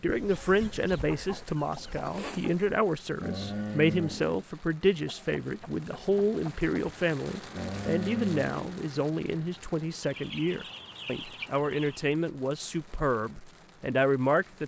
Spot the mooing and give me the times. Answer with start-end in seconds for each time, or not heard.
3.1-4.4, 7.5-8.8.